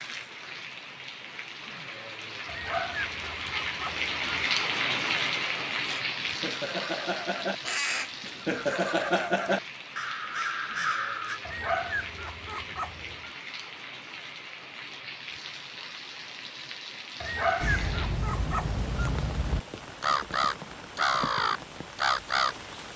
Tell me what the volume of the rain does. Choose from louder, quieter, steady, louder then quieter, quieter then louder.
quieter.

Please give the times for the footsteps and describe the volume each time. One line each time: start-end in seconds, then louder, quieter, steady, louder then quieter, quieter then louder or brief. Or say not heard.
not heard.